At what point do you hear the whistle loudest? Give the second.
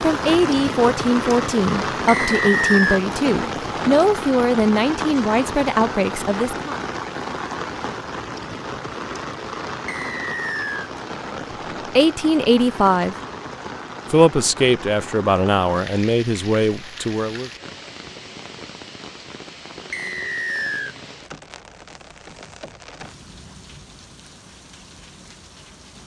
3 s.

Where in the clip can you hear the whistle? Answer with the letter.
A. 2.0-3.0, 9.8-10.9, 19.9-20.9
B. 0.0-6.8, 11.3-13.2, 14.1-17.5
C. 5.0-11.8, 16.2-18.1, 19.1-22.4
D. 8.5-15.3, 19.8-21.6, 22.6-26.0
A.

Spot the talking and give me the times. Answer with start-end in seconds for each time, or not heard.
0.0-6.8, 11.3-13.2, 14.1-17.5.